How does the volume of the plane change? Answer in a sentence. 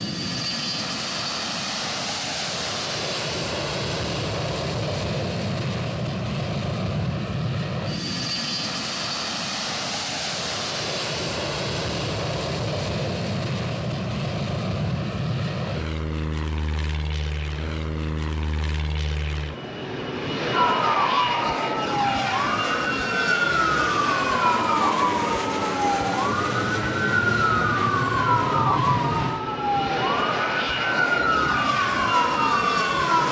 The loudness of the plane stays about the same.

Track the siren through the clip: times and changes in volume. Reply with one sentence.
You can hear the siren from 20.5 to 33.2 s, at a steady volume.